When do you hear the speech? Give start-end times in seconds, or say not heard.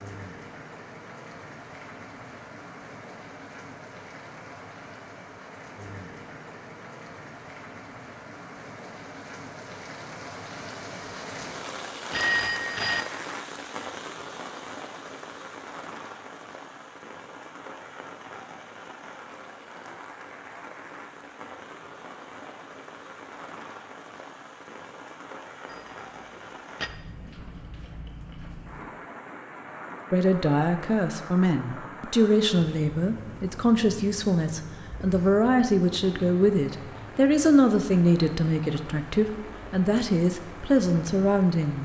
30.1-41.8.